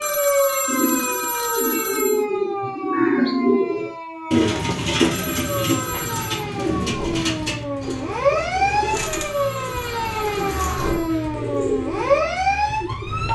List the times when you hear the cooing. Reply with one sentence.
The cooing can be heard from 0.7 to 12.2 s.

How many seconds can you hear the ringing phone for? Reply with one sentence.
You can hear the ringing phone for 6 seconds altogether.